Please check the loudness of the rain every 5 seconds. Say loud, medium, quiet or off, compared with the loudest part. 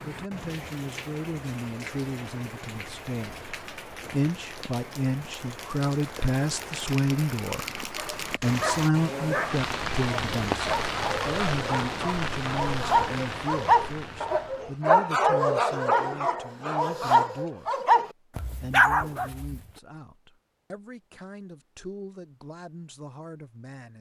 medium, loud, loud, off, off.